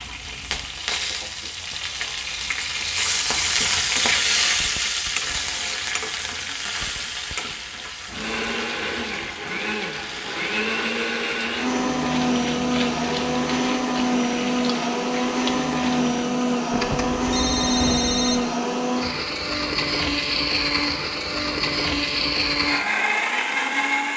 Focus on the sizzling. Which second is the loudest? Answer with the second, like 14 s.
4 s.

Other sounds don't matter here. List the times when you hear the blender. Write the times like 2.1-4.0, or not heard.
8.1-24.1.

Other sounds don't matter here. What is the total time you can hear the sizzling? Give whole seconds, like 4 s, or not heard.
16 s.